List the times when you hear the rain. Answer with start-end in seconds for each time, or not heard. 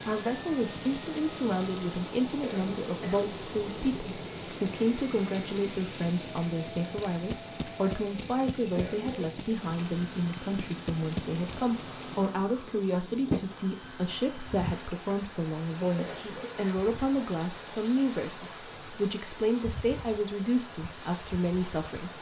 0.0-22.1.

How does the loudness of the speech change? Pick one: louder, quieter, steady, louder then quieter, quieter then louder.
steady.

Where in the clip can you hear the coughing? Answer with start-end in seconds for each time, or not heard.
2.2-3.3, 8.6-9.3, 15.8-16.9.